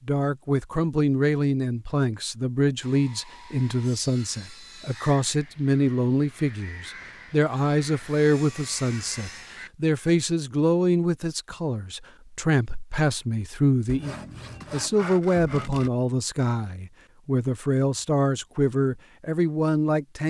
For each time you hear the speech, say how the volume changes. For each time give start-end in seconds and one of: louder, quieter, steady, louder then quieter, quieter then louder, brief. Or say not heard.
0.1-20.2 steady.